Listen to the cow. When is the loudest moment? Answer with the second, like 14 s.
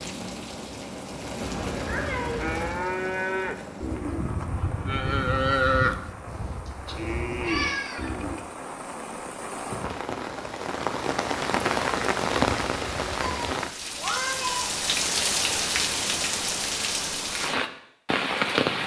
6 s.